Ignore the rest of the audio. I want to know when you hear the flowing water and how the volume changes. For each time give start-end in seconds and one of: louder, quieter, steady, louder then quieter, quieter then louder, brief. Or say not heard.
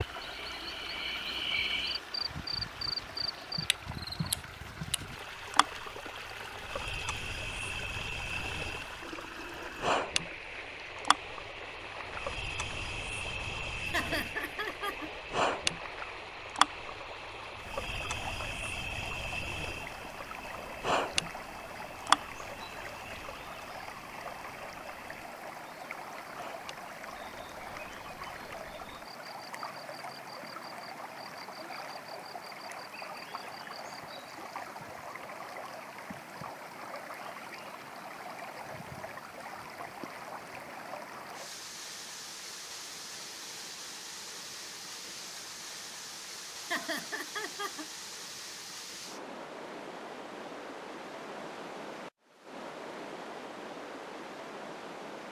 0.0-55.2 steady.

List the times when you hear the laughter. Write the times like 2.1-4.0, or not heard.
13.8-15.1, 46.6-47.9.